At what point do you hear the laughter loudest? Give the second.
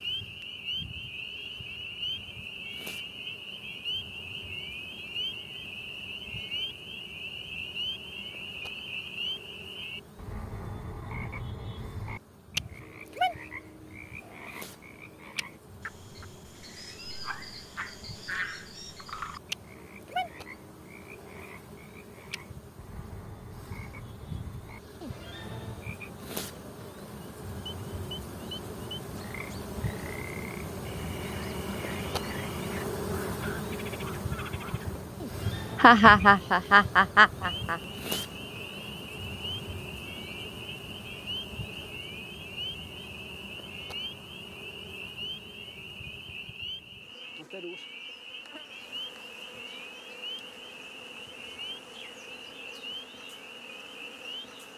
36 s.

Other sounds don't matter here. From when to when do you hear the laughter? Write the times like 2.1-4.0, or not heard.
35.8-37.8.